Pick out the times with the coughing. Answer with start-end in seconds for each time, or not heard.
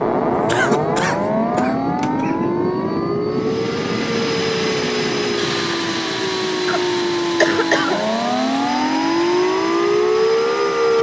0.5-2.5, 6.7-8.1.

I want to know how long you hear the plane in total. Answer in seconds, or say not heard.
11 s.